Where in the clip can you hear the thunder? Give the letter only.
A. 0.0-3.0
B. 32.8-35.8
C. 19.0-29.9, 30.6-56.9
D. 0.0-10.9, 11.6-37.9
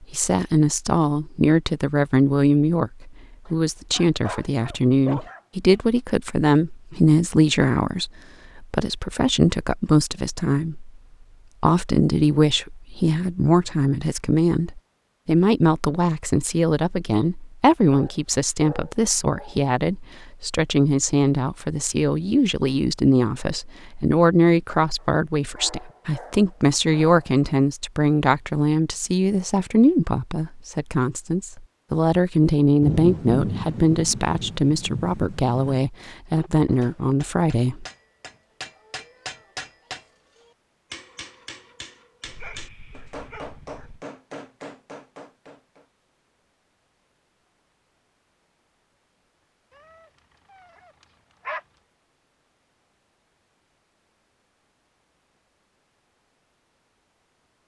B.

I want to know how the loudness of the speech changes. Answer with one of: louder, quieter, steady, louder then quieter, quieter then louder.
steady.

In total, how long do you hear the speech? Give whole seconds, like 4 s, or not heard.
37 s.